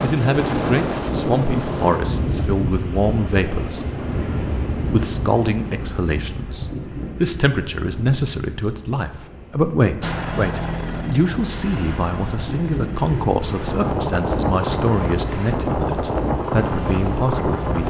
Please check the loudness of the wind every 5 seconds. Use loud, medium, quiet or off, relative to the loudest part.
loud, medium, loud, loud.